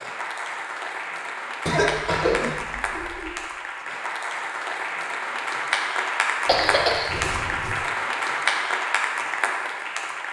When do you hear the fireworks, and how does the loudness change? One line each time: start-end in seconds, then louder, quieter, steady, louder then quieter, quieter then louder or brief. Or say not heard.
not heard.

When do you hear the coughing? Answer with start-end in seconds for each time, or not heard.
1.6-3.4, 6.5-7.8.